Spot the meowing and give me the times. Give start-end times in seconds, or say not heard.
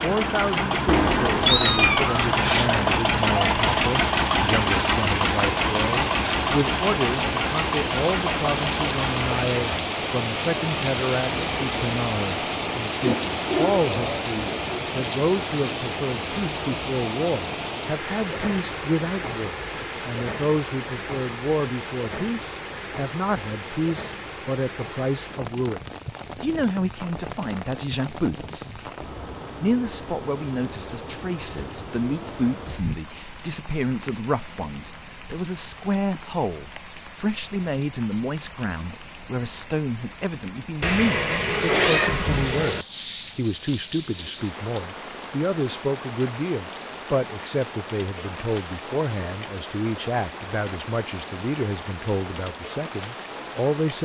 0.8-2.7, 40.8-42.9.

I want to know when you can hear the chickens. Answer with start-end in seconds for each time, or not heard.
not heard.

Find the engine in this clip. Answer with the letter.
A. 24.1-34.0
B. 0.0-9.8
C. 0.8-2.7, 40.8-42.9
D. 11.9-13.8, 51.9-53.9
B.